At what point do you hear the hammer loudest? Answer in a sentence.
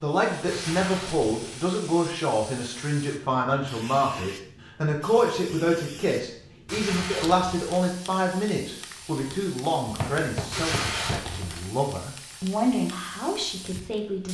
The volume of the hammer peaks at 10 seconds.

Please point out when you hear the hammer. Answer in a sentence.
The hammer can be heard from 9.8 to 11.4 s.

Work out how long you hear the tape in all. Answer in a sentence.
You can hear the tape for 3 seconds altogether.